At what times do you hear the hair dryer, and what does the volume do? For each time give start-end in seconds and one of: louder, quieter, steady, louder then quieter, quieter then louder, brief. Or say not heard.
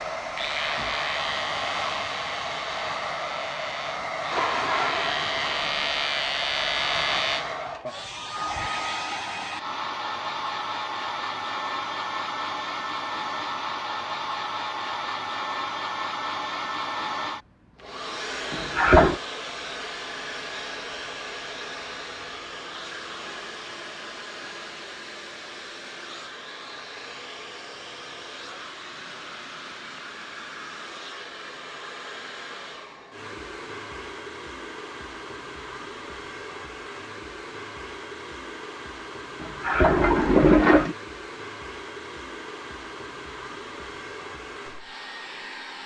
0.0-45.8 quieter.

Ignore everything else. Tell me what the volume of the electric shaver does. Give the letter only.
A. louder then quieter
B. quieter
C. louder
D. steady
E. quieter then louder
E.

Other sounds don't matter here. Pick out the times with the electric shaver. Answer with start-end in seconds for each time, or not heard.
0.1-7.5.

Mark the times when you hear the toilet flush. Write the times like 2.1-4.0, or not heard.
4.3-5.8, 18.5-19.2, 39.4-41.0.